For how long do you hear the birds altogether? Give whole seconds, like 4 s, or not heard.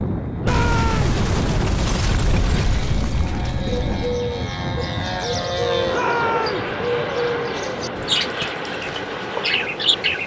7 s.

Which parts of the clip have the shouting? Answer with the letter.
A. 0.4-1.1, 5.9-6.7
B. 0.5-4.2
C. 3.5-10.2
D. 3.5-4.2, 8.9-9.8
A.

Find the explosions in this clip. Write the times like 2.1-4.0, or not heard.
0.5-4.2.